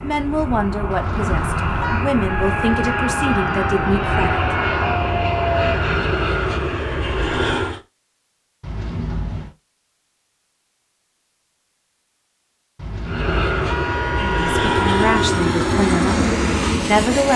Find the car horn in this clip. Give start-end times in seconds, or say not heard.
0.9-2.0, 8.6-9.6, 12.8-15.5.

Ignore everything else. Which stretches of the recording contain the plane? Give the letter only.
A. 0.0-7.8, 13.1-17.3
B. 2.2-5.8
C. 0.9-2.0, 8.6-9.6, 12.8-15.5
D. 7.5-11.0
A.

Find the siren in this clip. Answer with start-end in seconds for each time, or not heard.
2.2-5.8.